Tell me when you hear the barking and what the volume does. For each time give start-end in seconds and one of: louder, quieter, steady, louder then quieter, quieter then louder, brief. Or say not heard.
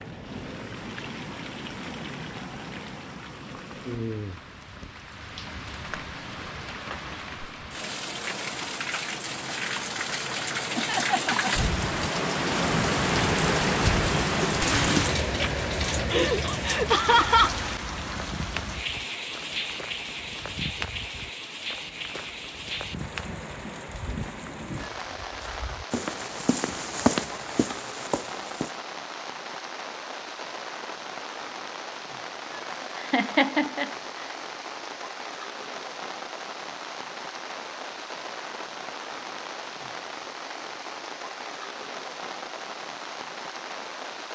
not heard.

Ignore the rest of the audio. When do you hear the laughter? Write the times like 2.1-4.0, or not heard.
10.8-11.7, 16.1-17.5, 33.1-33.9.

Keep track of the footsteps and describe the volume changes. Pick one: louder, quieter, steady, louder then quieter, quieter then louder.
louder.